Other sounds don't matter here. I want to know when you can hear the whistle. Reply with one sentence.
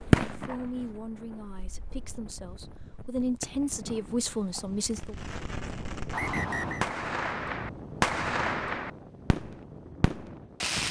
The whistle can be heard from 6.1 to 6.8 s.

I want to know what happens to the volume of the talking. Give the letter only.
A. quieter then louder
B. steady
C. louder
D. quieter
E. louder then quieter
A.